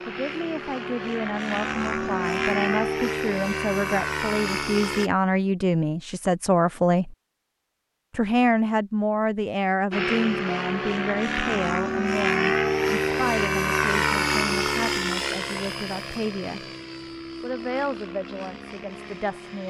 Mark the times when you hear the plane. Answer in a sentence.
You can hear the plane from 0.0 to 5.1 s and from 9.9 to 19.6 s.